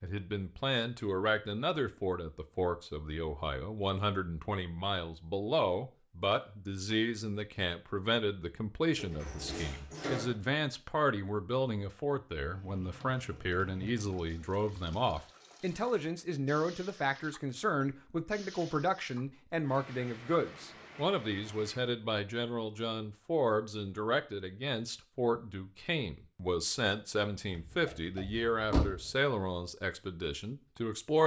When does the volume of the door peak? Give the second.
29 s.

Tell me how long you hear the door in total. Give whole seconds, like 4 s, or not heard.
3 s.